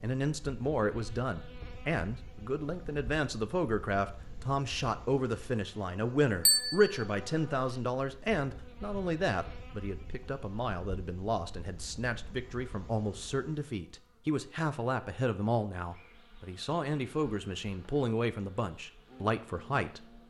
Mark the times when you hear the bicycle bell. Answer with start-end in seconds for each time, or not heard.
6.5-7.0.